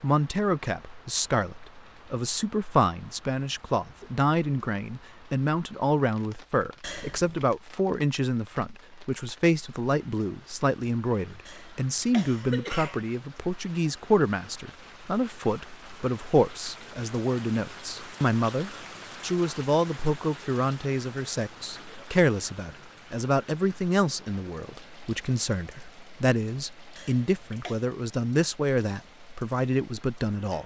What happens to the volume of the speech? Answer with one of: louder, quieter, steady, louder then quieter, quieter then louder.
steady.